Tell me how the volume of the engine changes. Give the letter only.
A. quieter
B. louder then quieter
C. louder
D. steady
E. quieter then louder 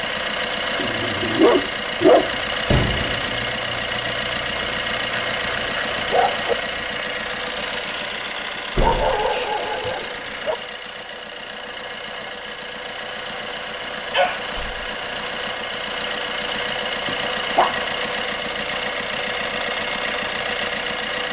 E.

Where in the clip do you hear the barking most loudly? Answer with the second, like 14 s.
2 s.